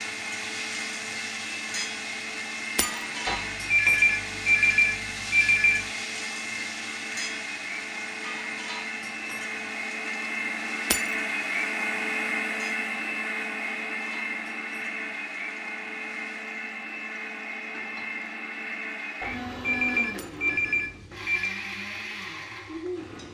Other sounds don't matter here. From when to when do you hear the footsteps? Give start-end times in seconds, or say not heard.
not heard.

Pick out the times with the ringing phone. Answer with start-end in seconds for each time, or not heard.
3.2-5.8, 19.2-21.6.